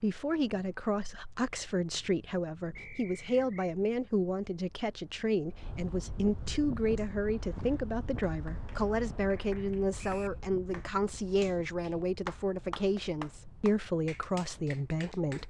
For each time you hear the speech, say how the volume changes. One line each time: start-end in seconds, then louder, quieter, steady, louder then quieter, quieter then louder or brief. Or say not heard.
0.0-15.4 steady.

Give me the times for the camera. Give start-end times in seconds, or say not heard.
not heard.